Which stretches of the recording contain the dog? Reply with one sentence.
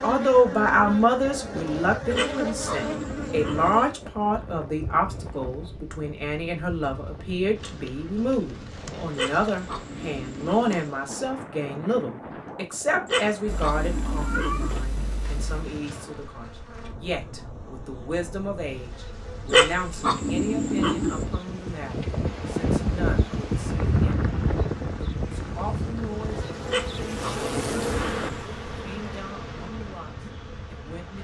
The dog can be heard from 2.1 to 3.9 s, from 9.2 to 10.9 s, from 13.1 to 14.8 s, from 19.5 to 21.2 s and from 26.6 to 28.4 s.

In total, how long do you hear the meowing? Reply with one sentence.
The meowing can be heard for 2 seconds in total.